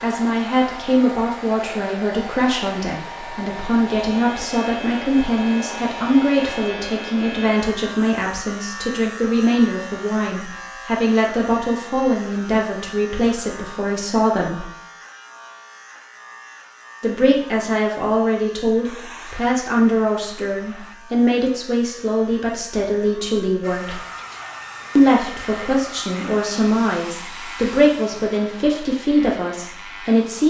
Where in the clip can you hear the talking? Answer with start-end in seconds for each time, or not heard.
0.0-14.7, 17.0-24.0, 24.9-30.4.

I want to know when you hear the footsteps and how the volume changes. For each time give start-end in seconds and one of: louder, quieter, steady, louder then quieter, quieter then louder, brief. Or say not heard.
not heard.